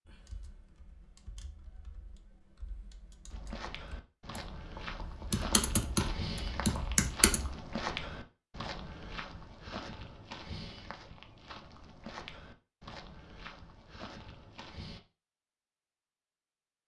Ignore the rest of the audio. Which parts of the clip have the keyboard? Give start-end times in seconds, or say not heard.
0.1-7.5.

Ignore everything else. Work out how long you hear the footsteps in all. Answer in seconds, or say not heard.
12 s.